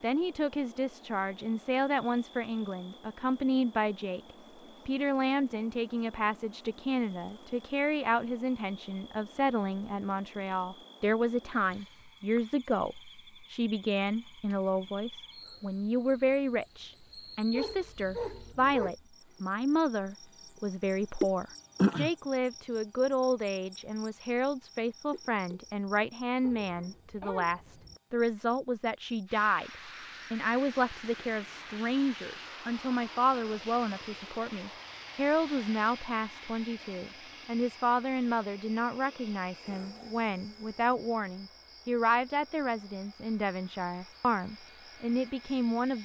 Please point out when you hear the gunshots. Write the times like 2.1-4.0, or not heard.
not heard.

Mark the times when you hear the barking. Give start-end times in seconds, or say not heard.
17.5-18.9, 26.4-28.0.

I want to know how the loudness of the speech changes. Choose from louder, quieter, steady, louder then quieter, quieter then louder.
steady.